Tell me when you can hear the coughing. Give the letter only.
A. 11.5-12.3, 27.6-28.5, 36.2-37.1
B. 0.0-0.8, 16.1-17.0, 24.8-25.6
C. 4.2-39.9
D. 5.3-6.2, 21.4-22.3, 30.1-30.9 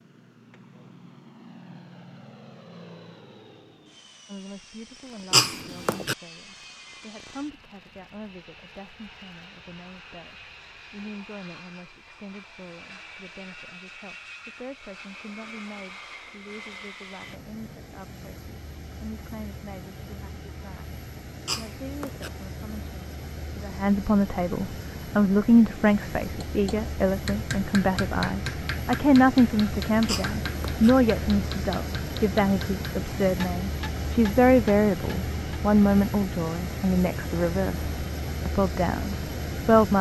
D.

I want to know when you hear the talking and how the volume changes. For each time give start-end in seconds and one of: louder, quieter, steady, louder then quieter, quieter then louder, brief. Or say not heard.
4.2-39.9 louder.